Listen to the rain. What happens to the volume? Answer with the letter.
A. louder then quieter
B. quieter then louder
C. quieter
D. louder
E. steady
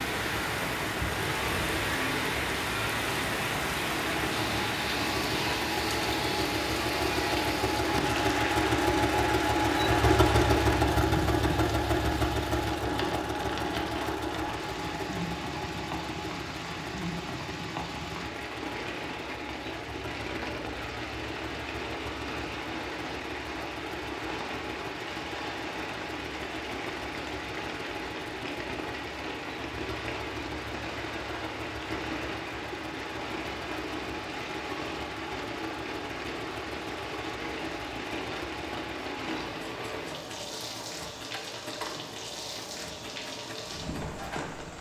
C.